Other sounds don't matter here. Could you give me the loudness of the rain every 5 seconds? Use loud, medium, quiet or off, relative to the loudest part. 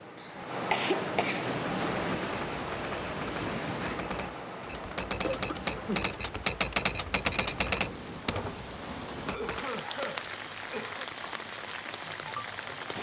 loud, medium, loud.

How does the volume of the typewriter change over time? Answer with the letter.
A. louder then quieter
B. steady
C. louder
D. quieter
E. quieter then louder
A.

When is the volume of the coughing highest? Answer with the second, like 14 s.
1 s.